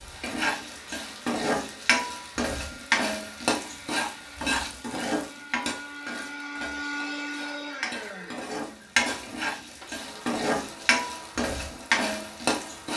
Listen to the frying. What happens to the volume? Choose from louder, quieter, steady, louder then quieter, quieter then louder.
quieter then louder.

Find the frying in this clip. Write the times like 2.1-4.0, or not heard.
0.0-12.9.